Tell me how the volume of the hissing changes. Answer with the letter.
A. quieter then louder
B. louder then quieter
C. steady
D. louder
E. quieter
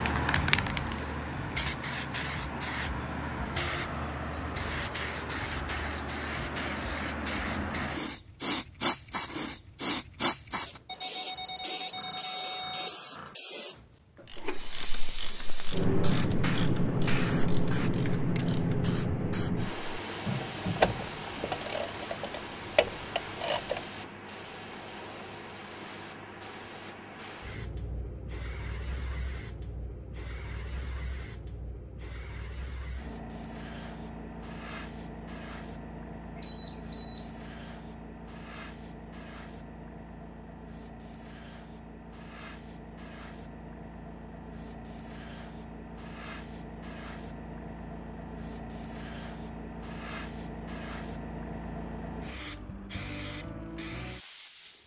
E.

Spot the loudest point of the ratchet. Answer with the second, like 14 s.
21 s.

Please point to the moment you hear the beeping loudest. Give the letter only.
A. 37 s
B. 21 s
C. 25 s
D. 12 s
A.